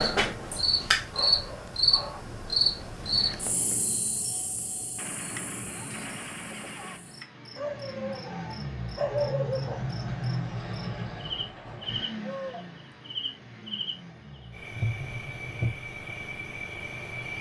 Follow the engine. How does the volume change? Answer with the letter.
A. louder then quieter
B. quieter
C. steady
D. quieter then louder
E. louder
A.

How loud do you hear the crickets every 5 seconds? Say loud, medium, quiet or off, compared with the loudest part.
loud, quiet, medium, medium.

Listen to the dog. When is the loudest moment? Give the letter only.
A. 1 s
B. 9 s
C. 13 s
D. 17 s
B.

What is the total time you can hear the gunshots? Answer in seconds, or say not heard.
2 s.